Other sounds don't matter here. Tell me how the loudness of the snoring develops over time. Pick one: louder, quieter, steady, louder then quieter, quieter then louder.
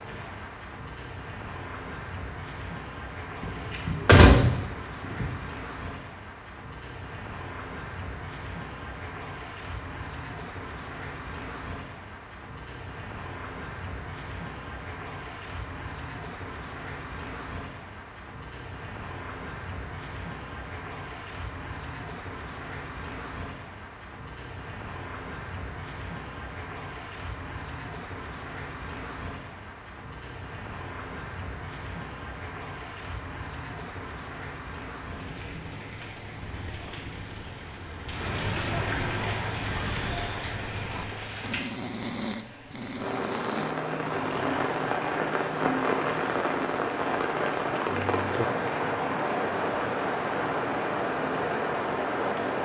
louder then quieter.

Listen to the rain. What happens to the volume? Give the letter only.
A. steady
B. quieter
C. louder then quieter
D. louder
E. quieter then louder
D.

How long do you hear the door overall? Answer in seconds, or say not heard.
2 s.